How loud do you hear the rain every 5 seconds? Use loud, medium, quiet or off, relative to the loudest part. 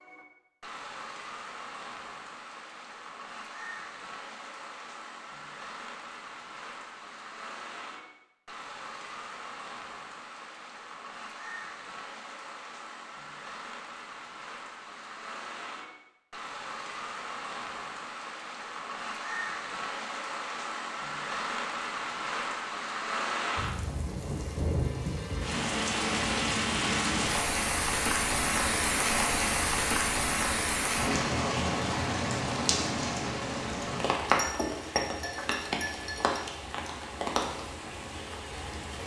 quiet, quiet, quiet, medium, medium, loud, loud, medium.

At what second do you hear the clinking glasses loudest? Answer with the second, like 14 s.
35 s.